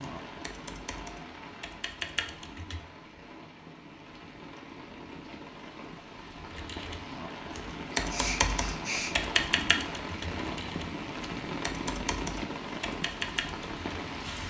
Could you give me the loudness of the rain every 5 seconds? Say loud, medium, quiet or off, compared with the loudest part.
medium, loud, loud.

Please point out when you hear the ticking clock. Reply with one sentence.
The ticking clock can't be heard in this clip.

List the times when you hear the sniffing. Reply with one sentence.
You can hear the sniffing from 8.0 to 9.2 s.